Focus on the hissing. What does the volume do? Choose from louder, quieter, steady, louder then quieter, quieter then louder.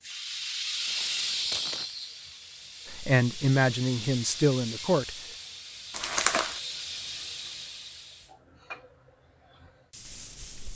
quieter.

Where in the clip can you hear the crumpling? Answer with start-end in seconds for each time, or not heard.
0.8-1.9, 5.9-6.6.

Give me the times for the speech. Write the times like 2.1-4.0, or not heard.
3.0-5.2.